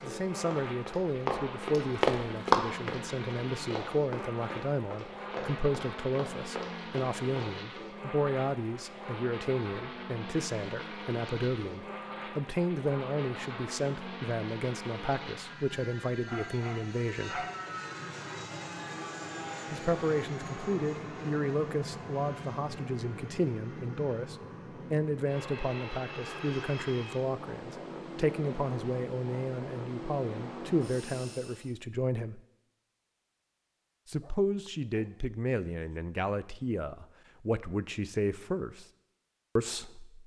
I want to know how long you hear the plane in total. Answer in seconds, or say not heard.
32 s.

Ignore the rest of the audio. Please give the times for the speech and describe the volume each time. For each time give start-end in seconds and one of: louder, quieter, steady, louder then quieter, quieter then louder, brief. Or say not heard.
0.0-17.4 steady
19.7-32.4 steady
34.0-38.9 steady
39.5-40.2 brief.